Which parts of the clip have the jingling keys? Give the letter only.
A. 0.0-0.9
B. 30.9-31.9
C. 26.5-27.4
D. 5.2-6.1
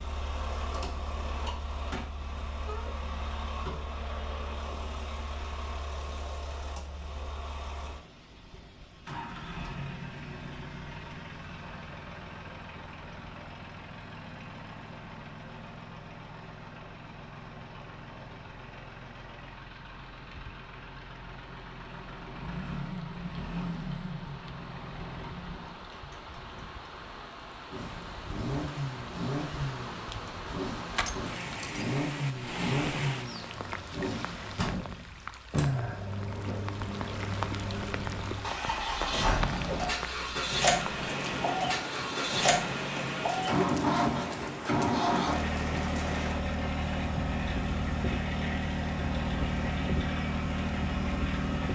B.